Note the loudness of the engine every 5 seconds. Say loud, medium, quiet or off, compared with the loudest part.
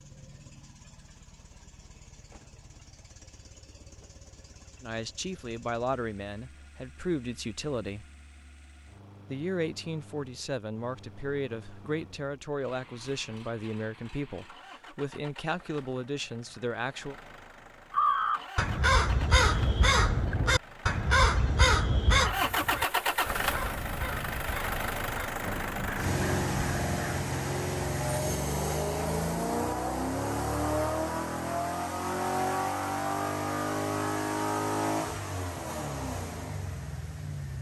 quiet, quiet, quiet, quiet, loud, loud, loud, medium.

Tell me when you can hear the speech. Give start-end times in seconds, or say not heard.
4.8-8.1, 9.3-17.1.